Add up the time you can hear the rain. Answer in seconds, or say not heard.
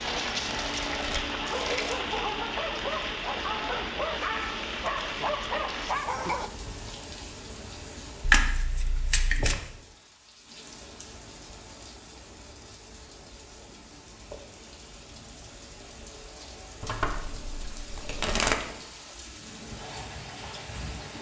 21 s.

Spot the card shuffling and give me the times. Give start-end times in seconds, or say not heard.
0.5-2.0, 8.2-9.6, 16.8-18.6.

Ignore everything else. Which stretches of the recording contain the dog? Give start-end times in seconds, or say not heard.
0.0-6.5.